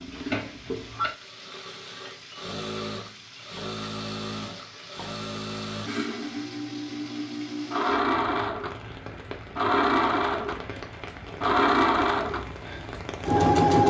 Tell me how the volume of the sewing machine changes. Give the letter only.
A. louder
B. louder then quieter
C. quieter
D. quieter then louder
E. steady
A.